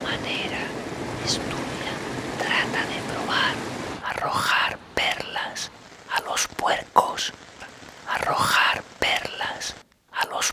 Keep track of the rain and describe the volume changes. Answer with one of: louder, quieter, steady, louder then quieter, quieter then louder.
quieter.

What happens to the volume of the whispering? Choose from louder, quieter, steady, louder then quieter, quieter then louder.
louder.